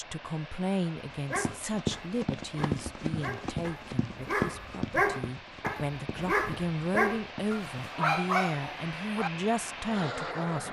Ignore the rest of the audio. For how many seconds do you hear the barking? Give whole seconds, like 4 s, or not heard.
8 s.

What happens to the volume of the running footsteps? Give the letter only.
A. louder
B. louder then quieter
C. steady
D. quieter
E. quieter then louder
D.